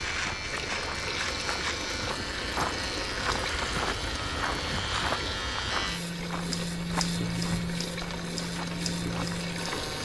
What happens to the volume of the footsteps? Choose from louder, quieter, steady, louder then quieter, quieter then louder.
louder then quieter.